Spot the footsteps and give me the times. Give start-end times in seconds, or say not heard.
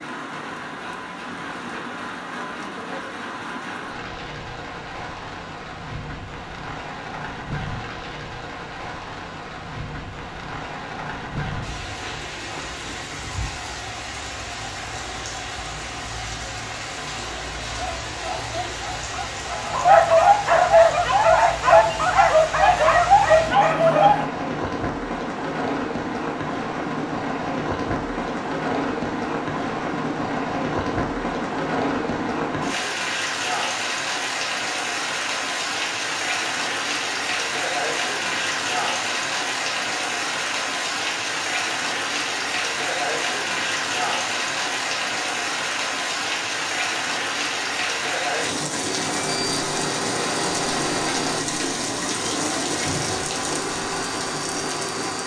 not heard.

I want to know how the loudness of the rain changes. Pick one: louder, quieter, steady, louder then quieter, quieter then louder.
louder.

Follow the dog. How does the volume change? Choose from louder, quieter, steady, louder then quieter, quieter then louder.
louder.